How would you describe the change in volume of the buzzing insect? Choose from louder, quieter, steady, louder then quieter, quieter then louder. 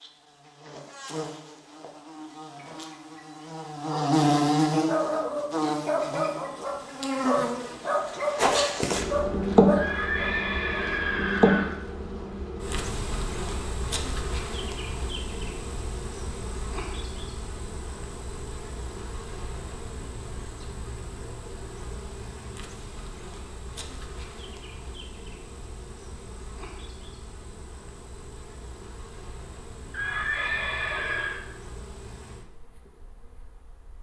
quieter.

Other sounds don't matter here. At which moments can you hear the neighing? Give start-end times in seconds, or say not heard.
9.8-11.8, 29.9-31.4.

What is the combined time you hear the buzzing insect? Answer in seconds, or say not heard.
34 s.